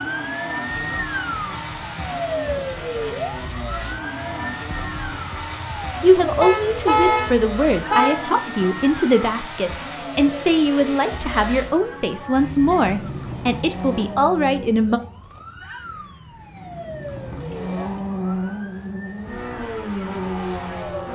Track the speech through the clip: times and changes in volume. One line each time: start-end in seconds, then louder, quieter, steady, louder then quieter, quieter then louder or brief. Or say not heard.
6.0-15.0 steady.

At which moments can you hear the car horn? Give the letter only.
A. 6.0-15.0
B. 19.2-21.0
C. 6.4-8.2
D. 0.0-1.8
C.